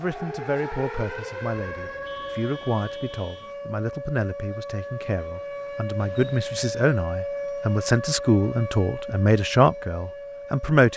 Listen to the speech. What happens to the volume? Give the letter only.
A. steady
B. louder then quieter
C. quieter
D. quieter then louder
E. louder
E.